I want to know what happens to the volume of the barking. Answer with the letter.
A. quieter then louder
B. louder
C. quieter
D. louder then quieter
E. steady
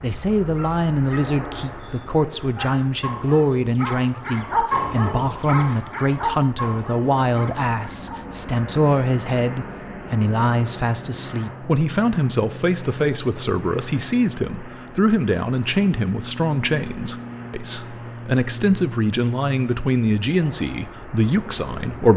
D.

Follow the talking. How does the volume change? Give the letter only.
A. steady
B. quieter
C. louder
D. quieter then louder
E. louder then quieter
A.